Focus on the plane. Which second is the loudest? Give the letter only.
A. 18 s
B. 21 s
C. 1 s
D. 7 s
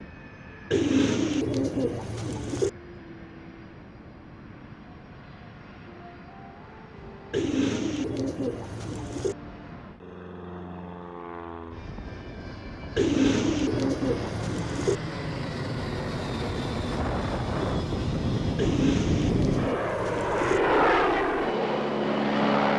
B.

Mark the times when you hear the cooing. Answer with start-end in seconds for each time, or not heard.
0.7-2.7, 7.3-9.3, 12.9-14.9, 18.6-20.6.